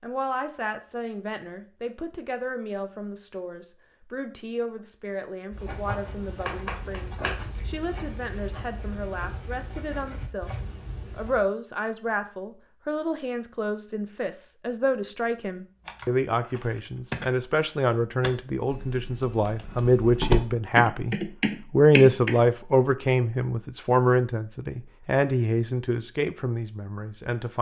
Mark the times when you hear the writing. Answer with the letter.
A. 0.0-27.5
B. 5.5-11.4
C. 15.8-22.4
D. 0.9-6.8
B.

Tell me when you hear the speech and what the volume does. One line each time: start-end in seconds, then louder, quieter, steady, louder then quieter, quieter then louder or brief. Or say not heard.
0.0-27.5 louder.